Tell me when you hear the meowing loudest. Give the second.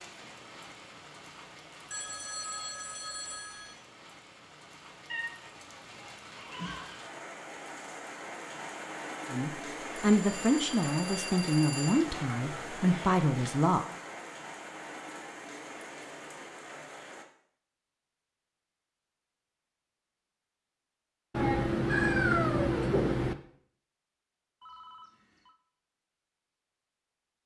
22 s.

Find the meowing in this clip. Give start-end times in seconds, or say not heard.
5.1-7.0, 11.9-13.5, 21.3-23.4.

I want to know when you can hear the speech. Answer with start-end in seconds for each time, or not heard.
9.3-13.8.